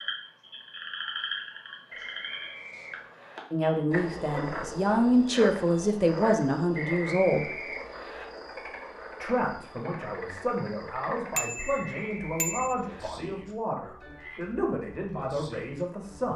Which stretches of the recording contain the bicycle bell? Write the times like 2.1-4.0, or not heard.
11.3-12.8.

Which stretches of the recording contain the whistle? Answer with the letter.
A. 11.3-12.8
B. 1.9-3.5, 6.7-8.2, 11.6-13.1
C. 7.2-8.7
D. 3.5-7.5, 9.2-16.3
B.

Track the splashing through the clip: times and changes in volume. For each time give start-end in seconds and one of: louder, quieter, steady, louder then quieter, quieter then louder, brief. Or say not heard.
not heard.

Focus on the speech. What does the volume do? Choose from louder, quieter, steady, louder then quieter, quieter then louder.
quieter.